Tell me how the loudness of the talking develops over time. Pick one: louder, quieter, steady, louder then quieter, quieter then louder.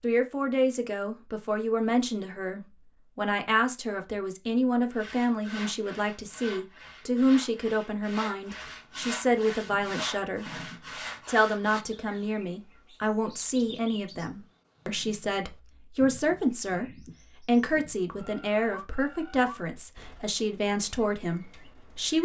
steady.